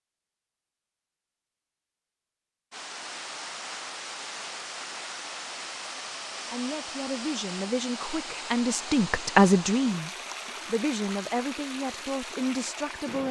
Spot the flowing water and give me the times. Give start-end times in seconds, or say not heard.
2.7-13.2.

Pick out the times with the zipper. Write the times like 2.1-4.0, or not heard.
not heard.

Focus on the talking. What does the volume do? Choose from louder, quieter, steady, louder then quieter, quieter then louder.
louder then quieter.